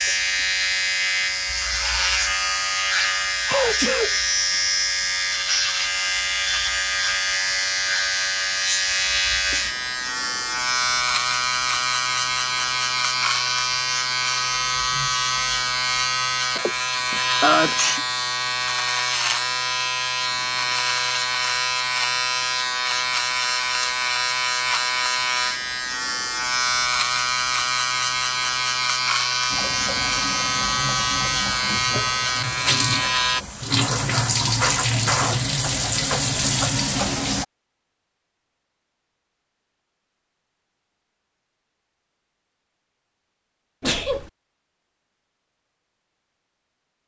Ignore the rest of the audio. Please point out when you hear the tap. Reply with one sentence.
You can hear the tap from 29.5 to 37.5 s.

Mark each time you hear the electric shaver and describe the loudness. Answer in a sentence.
You can hear the electric shaver from 0.0 to 33.5 s, at a steady volume.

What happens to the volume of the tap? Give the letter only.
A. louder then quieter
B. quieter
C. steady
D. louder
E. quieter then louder
D.